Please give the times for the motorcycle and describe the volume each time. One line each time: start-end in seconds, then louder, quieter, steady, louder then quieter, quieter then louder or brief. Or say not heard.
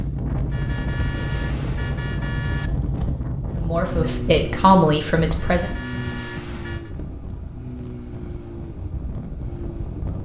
0.0-10.2 quieter.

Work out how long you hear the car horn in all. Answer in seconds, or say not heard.
4 s.